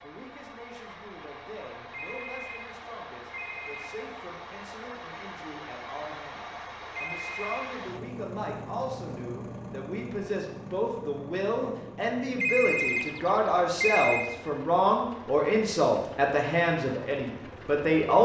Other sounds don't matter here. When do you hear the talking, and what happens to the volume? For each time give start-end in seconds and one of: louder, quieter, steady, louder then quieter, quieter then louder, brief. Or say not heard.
0.0-18.2 louder.